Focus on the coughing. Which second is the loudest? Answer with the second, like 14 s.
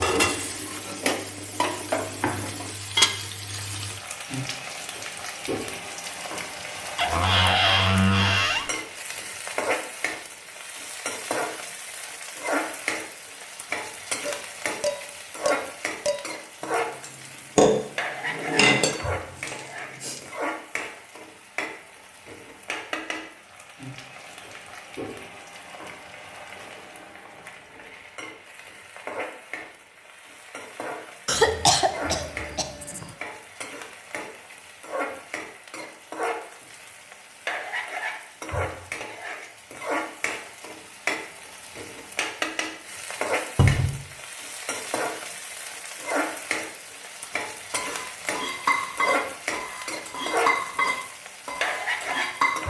32 s.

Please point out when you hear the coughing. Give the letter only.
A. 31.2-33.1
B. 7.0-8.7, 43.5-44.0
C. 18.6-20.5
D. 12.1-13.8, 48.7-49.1
A.